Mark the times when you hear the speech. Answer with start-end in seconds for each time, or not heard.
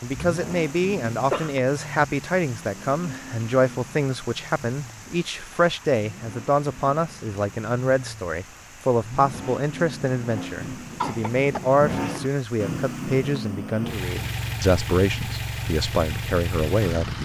0.0-17.1.